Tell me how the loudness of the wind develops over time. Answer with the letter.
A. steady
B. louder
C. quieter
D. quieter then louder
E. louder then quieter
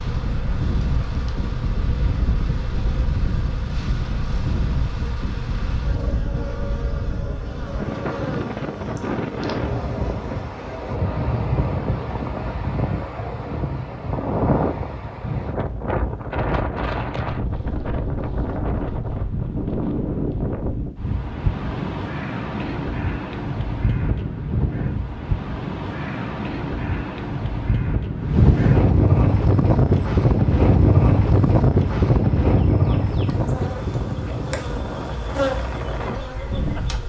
B.